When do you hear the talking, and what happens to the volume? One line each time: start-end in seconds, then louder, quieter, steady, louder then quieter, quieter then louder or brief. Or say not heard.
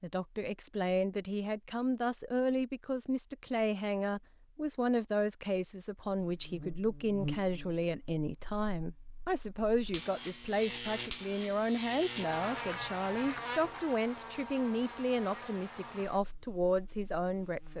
0.0-17.7 steady.